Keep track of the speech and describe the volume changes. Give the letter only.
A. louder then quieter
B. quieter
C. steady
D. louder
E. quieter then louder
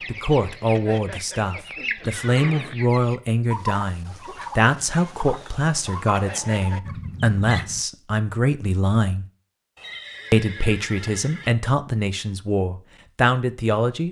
C.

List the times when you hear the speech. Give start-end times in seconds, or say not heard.
0.1-9.2, 10.3-14.0.